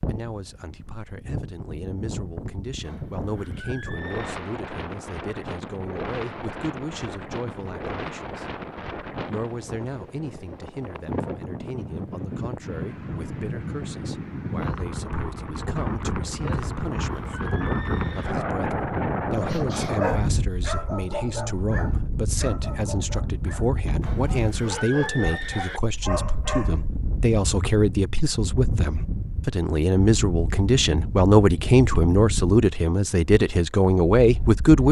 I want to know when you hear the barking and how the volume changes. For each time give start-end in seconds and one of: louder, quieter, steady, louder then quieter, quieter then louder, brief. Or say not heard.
19.4-26.9 quieter then louder.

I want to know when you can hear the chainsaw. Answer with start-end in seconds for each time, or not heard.
not heard.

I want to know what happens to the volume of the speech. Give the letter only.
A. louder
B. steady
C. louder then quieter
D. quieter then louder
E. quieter
A.